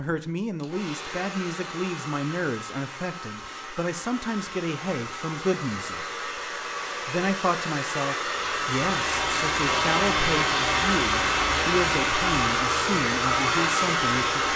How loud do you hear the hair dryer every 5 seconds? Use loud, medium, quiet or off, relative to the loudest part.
quiet, medium, loud.